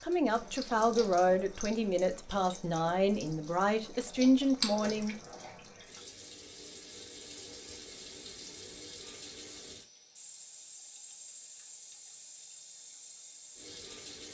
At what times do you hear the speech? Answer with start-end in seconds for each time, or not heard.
0.0-5.2.